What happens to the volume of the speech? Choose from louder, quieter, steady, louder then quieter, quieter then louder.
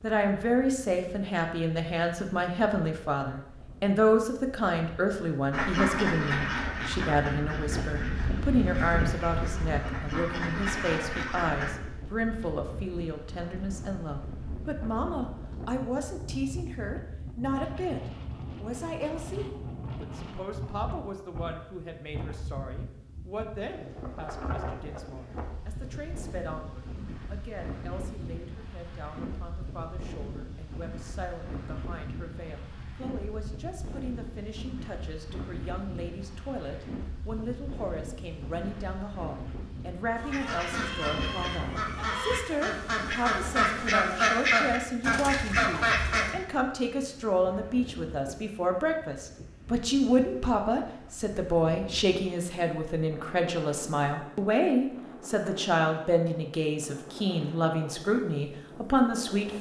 quieter then louder.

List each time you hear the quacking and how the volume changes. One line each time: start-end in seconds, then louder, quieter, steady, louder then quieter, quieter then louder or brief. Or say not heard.
5.5-11.8 quieter then louder
40.1-46.4 louder.